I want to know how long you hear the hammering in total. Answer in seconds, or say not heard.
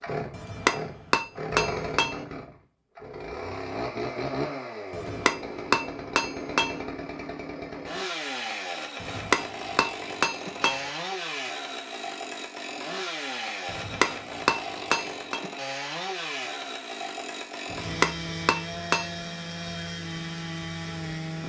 9 s.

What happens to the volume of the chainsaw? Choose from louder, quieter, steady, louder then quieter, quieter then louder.
steady.